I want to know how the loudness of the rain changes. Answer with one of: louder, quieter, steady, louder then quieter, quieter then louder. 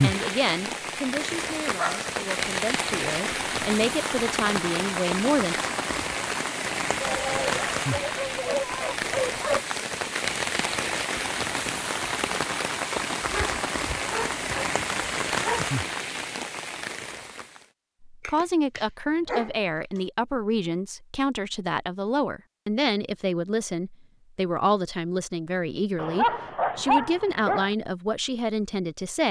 steady.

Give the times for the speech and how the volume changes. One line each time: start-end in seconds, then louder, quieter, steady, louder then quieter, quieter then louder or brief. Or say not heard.
0.0-5.5 quieter then louder
18.1-29.2 steady.